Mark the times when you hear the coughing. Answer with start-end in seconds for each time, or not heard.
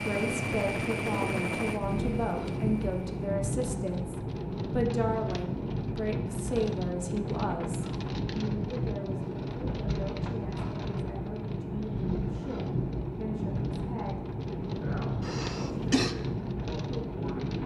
15.2-16.1.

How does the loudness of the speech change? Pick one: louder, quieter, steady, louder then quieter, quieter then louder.
quieter.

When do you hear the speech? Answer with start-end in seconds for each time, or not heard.
0.0-17.6.